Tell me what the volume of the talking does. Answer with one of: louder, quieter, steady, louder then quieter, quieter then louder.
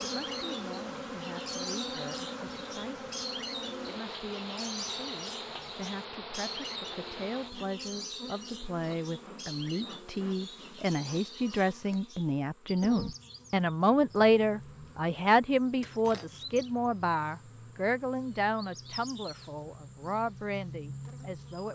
louder then quieter.